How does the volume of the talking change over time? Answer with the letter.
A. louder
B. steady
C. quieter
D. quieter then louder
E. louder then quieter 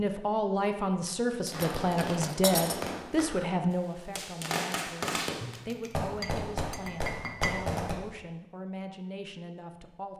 C.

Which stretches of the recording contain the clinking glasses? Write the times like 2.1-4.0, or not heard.
1.4-3.5, 5.4-7.5.